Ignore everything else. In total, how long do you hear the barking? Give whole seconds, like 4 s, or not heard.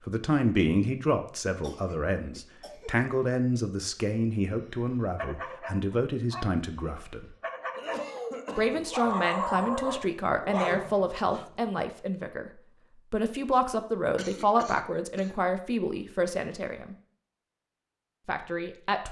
6 s.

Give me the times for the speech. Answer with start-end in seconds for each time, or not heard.
0.1-7.3, 8.6-16.9, 18.2-19.0.